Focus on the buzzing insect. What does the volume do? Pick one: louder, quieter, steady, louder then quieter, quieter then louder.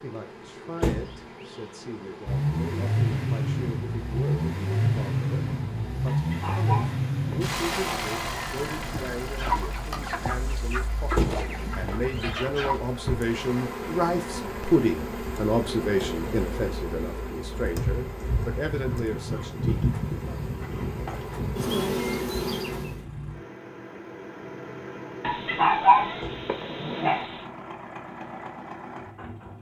louder.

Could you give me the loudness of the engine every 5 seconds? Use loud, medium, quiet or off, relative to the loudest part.
loud, loud, quiet, quiet, quiet, quiet.